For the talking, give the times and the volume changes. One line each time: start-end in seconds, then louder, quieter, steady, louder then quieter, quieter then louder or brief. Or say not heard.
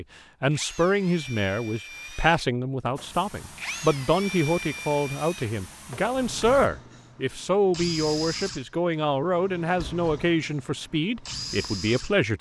0.0-12.3 steady.